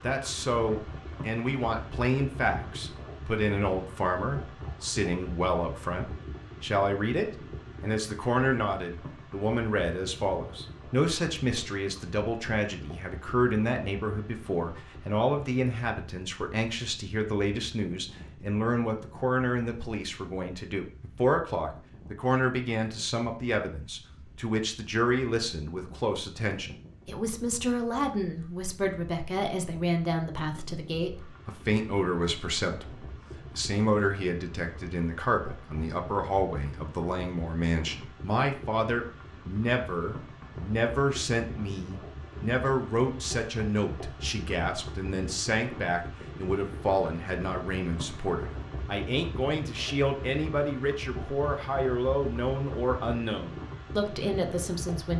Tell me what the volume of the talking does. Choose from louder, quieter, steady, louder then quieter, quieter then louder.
steady.